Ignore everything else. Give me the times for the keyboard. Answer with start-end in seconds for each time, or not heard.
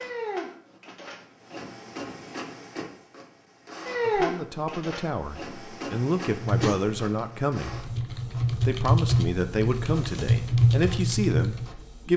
6.3-11.7.